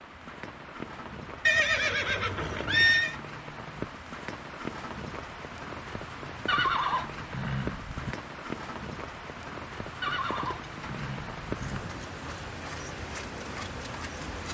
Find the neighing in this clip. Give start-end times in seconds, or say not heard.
1.4-3.1, 6.5-8.2, 10.0-12.0.